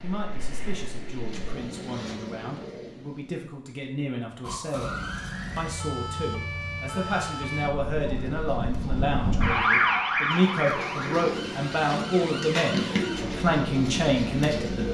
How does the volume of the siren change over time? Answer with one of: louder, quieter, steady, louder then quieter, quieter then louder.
louder then quieter.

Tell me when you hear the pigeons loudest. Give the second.
13 s.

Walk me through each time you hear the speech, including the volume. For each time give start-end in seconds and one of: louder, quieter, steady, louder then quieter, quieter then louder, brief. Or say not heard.
0.0-14.8 louder.